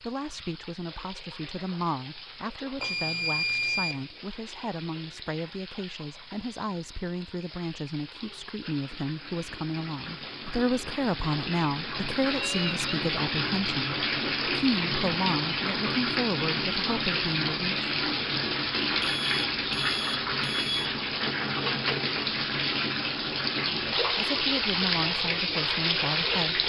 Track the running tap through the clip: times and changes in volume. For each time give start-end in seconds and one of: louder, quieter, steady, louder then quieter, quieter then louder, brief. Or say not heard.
0.0-26.6 louder.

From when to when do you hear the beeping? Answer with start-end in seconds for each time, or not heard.
2.8-4.0, 12.3-13.1, 19.0-20.9.